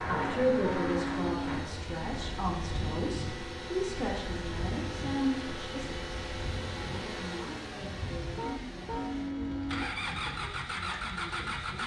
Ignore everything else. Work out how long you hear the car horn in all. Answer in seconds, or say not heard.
3 s.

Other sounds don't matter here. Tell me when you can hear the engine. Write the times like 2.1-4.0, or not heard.
0.0-11.8.